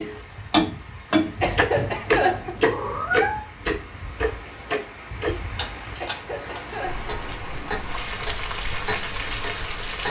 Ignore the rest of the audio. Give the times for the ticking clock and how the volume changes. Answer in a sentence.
The ticking clock can be heard from 0.0 to 10.0 s, getting quieter.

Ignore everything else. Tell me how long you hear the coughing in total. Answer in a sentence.
You can hear the coughing for 2 seconds altogether.